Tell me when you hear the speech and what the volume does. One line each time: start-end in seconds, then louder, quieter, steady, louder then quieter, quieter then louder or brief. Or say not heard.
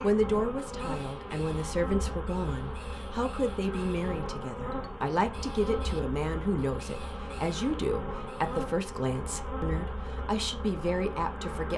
0.0-11.7 steady.